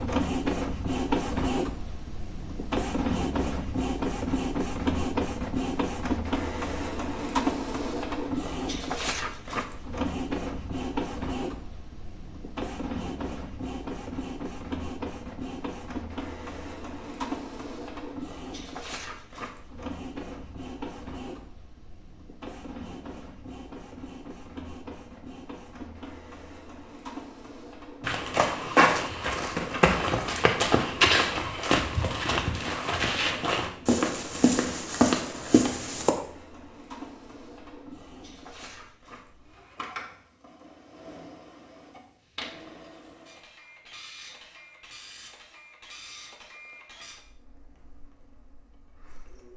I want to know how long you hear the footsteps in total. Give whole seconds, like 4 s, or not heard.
8 s.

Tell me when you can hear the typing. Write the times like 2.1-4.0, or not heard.
not heard.